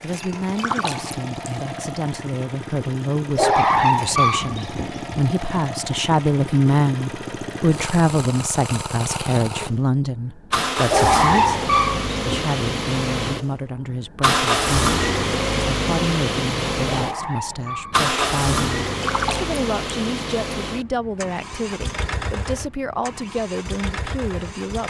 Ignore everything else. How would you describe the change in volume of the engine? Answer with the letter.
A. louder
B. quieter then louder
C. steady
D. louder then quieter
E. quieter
D.